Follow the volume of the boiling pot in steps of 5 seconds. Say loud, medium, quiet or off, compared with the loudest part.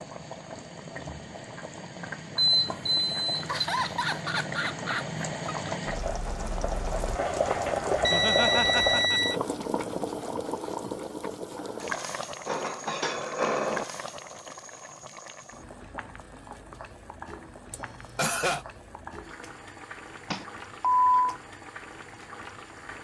medium, loud, medium, quiet, quiet.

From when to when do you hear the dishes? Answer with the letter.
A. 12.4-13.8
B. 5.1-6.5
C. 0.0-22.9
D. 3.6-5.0
A.